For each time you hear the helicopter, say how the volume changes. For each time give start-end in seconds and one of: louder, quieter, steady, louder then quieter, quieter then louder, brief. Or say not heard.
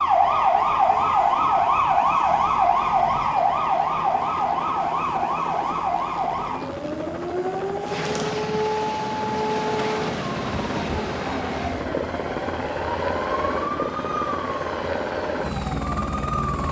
0.0-16.6 louder.